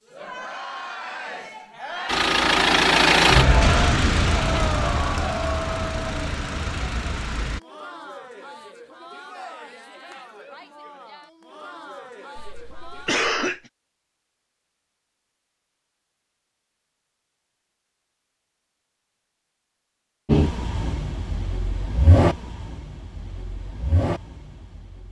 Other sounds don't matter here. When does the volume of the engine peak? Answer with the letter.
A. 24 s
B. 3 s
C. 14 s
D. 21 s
B.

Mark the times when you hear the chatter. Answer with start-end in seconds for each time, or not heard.
0.0-13.2.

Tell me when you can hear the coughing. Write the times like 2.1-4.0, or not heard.
12.3-13.6.